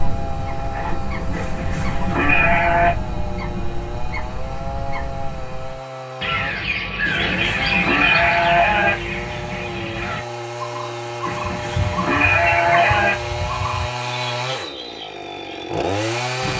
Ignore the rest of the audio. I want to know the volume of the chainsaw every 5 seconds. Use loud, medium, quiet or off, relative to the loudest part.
medium, medium, loud, loud.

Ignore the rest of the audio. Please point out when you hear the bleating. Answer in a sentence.
You can hear the bleating from 1.3 to 3.0 s, from 7.0 to 8.9 s and from 11.2 to 13.2 s.